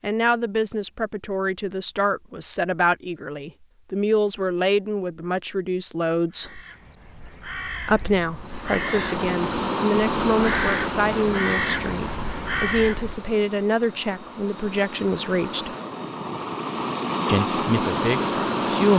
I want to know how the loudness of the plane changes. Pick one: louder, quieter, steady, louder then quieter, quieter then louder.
quieter then louder.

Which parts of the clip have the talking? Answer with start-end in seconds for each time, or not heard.
0.0-6.6, 7.8-15.7, 17.2-18.9.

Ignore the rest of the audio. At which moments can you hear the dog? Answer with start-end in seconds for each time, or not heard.
not heard.